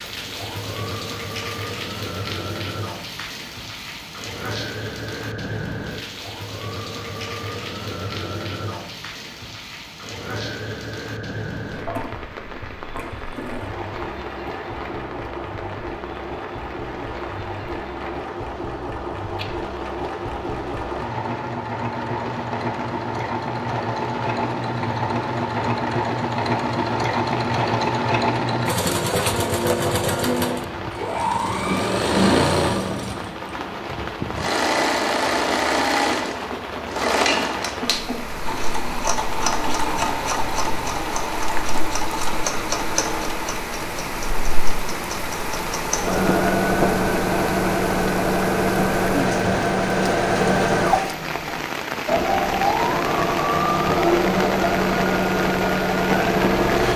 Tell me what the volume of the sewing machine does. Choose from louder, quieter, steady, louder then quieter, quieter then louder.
louder.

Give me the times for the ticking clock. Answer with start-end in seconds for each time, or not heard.
not heard.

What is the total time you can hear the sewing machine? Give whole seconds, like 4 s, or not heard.
57 s.